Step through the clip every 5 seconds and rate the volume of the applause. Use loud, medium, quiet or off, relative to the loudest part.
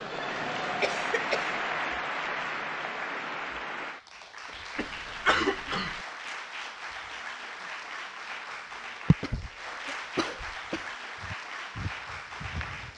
loud, medium, medium.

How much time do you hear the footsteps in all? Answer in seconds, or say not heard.
2 s.